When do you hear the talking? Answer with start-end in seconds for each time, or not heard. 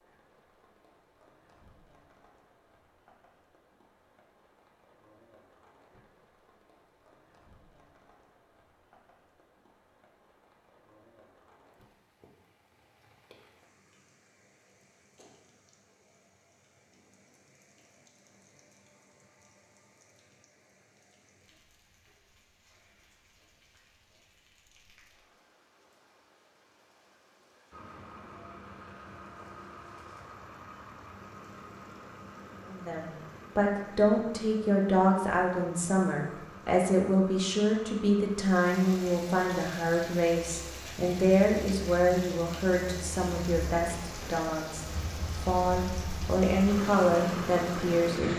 32.7-48.3.